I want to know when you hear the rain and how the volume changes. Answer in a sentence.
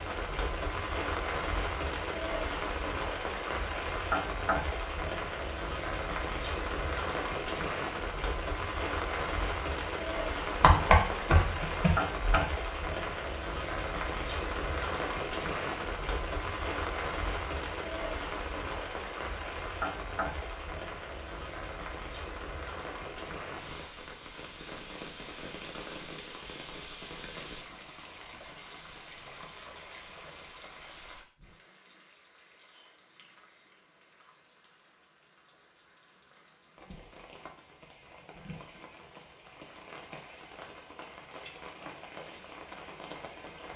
The rain can be heard from 0.0 to 43.7 s, getting quieter.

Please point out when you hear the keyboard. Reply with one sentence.
The keyboard can be heard from 10.6 to 12.4 s.